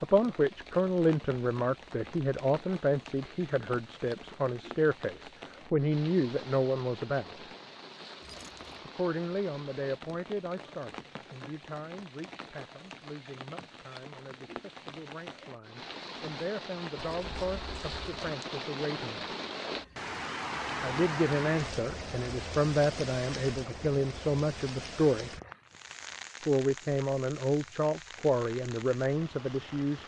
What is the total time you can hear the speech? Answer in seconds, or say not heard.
26 s.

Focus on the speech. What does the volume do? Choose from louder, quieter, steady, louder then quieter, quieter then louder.
quieter then louder.